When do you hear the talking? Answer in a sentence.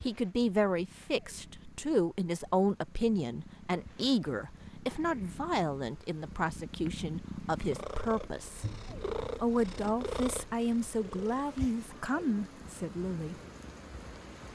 The talking can be heard from 0.0 to 8.7 s and from 9.4 to 13.3 s.